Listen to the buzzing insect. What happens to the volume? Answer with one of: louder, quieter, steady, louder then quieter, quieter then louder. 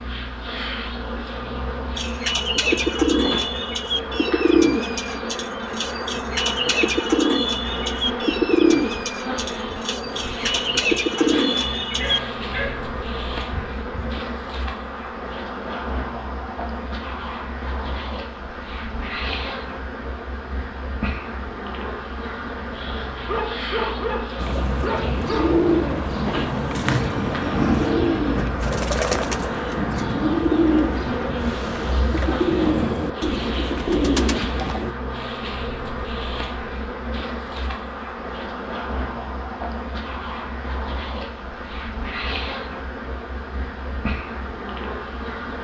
steady.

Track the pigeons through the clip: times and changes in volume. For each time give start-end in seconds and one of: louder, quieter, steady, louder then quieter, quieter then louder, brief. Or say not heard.
1.9-12.2 steady
24.4-35.0 steady.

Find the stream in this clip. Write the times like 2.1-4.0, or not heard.
not heard.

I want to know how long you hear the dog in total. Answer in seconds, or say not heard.
5 s.